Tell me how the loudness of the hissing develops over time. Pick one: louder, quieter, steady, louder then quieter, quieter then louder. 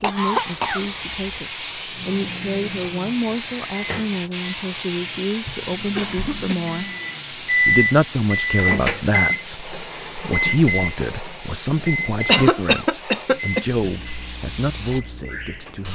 quieter.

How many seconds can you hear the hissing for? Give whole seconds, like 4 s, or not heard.
16 s.